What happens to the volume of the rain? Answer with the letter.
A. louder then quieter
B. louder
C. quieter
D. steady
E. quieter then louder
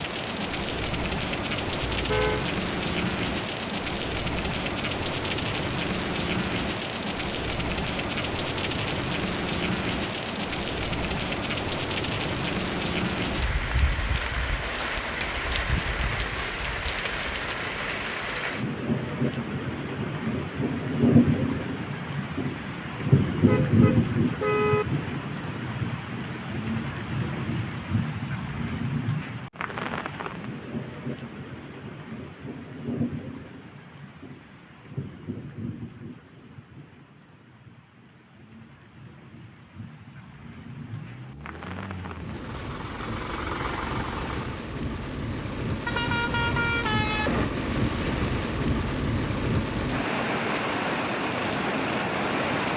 E.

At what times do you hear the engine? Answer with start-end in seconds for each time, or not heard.
40.9-44.6.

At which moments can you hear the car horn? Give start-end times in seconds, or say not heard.
1.9-2.5, 23.4-24.9, 45.9-47.5.